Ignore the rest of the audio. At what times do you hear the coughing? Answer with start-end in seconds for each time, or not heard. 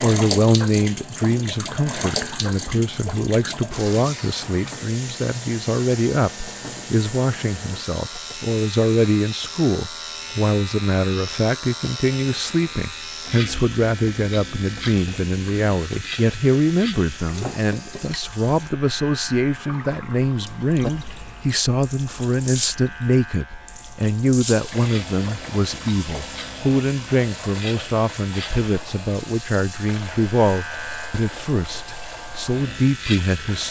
not heard.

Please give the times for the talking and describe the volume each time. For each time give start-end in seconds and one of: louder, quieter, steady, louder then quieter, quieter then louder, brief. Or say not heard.
0.0-33.6 steady.